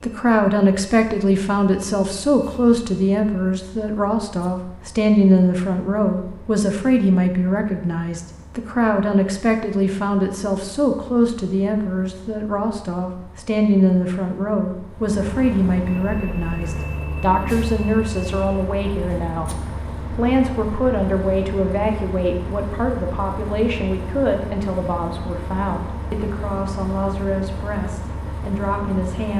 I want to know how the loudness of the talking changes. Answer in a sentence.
The loudness of the talking goes down.